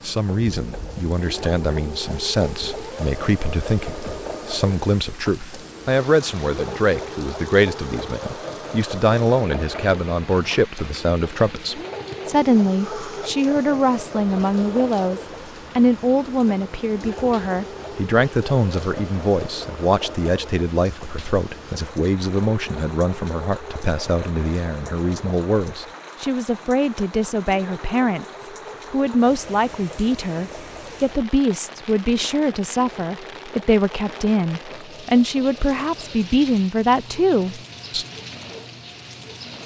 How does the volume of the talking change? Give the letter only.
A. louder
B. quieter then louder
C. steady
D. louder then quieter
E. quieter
C.